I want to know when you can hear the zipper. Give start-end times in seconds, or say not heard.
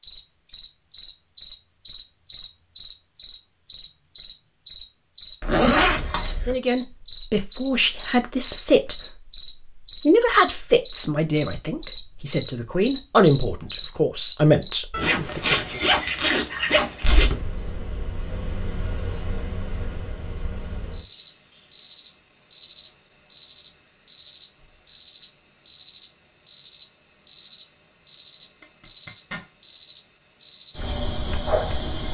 5.4-6.5, 14.9-17.3, 28.6-29.4.